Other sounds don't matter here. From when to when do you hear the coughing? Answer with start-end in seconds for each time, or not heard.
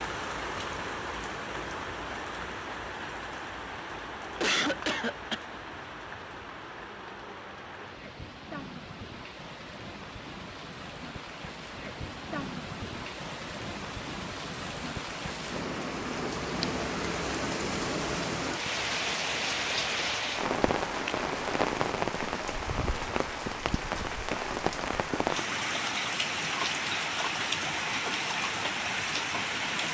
4.4-5.4.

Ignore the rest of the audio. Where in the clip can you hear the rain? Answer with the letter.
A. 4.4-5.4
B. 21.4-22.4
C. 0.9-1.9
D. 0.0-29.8
D.